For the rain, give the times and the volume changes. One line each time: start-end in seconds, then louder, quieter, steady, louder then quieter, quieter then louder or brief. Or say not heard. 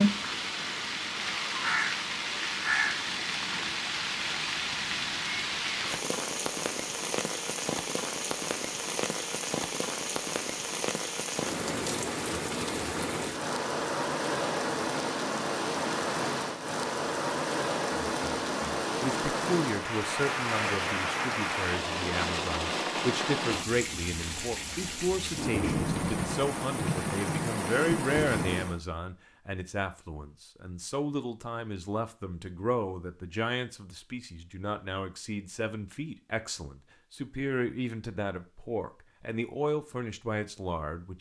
0.0-28.8 steady.